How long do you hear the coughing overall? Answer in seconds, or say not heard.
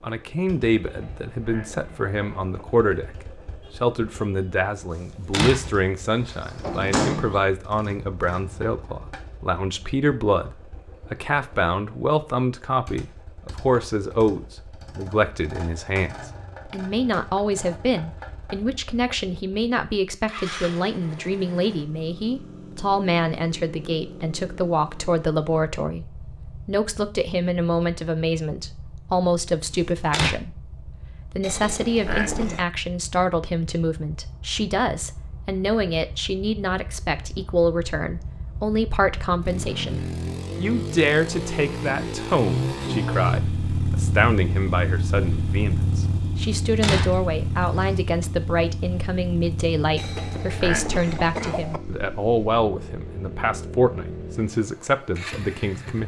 5 s.